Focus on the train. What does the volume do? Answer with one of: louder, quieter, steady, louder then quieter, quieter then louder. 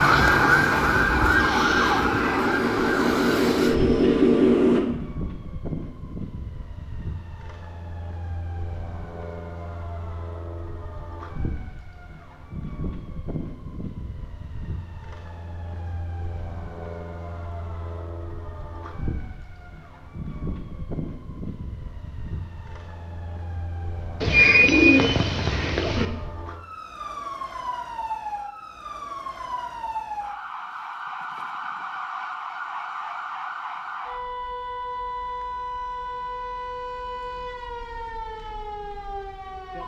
louder.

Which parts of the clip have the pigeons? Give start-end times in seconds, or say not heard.
24.2-26.1.